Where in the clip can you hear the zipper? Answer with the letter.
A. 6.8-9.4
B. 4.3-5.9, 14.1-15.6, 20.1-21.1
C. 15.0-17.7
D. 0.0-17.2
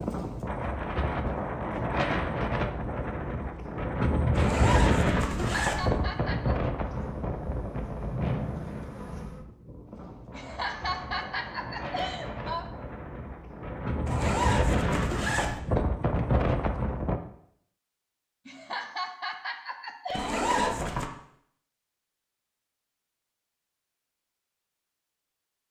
B.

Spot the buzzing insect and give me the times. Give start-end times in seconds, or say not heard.
6.8-9.4.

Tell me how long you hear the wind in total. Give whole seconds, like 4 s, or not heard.
17 s.